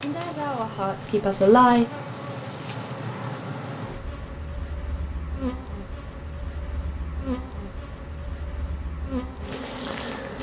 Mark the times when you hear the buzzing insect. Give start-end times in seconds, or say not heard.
0.0-10.3.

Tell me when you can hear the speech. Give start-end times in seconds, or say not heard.
0.0-1.9.